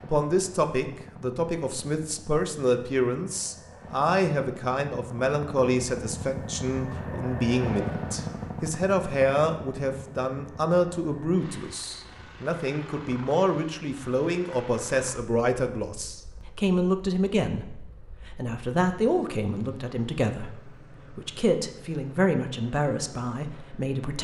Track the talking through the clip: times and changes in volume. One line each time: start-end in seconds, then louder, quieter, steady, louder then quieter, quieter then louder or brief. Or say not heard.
0.0-24.2 steady.